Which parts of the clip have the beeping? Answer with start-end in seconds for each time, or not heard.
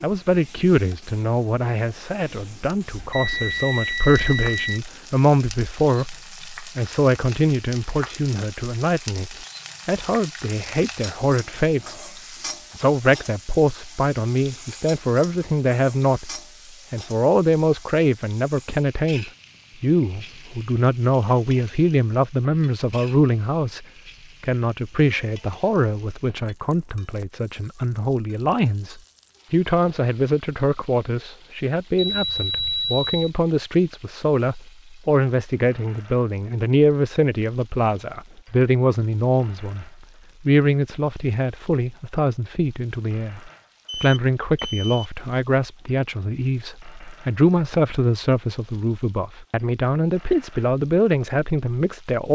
3.0-4.8, 31.9-33.3, 43.9-45.1.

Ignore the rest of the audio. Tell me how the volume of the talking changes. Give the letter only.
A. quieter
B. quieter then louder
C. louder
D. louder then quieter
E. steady
E.